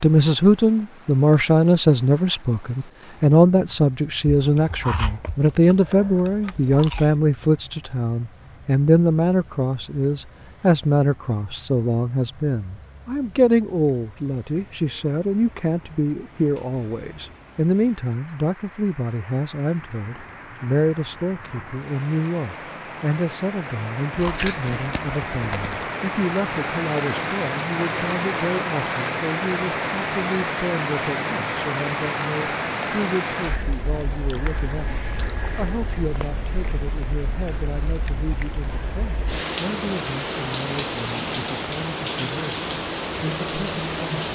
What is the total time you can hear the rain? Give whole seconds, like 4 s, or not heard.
44 s.